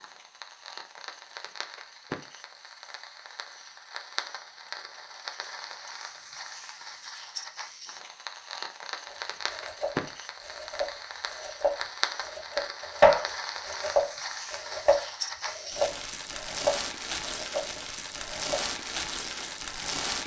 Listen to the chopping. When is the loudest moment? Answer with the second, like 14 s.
13 s.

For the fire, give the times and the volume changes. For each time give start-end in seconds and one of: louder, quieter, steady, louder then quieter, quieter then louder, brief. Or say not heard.
0.0-20.2 louder.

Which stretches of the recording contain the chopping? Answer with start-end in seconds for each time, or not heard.
9.1-18.7.